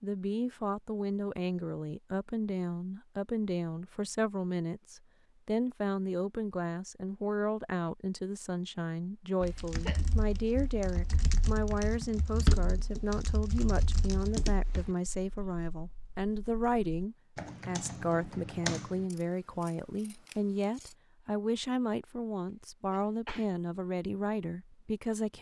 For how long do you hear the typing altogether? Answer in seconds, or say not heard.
10 s.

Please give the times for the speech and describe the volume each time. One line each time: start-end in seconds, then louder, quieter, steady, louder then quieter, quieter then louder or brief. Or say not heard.
0.0-25.3 steady.